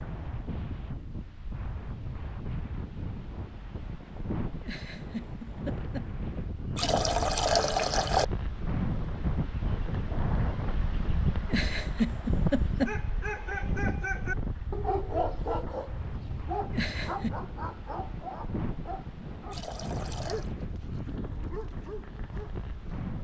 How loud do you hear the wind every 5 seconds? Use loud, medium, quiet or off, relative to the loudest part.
medium, loud, loud, medium, medium.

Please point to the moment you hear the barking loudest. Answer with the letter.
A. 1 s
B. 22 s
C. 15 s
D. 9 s
C.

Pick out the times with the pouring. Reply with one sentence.
You can hear the pouring from 6.8 to 8.2 s and from 19.5 to 20.6 s.